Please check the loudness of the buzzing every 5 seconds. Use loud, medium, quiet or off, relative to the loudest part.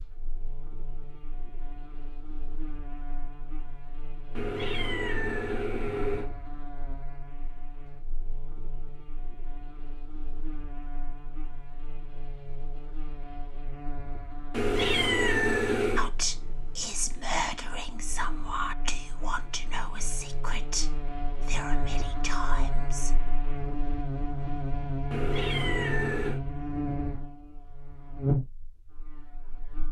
quiet, quiet, quiet, quiet, loud, loud.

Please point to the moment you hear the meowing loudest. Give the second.
15 s.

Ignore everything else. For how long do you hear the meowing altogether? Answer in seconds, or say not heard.
5 s.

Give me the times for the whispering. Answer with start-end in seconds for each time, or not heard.
15.9-23.1.